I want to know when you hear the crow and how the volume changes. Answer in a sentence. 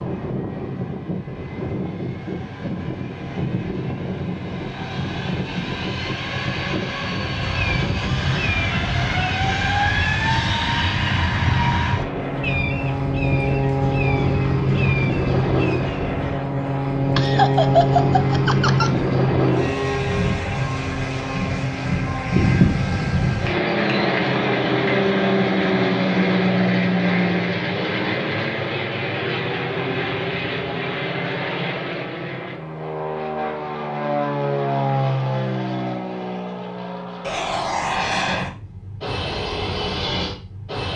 You can hear the crow from 7.3 to 16.4 s, at a steady volume.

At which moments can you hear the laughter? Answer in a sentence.
The laughter can be heard from 17.1 to 18.9 s.